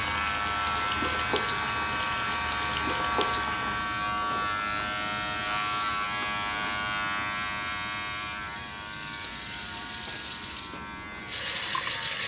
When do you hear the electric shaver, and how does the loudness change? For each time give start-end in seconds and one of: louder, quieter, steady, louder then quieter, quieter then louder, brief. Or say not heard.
0.0-12.2 quieter.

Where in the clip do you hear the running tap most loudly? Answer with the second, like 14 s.
10 s.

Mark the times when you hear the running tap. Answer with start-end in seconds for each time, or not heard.
0.0-12.2.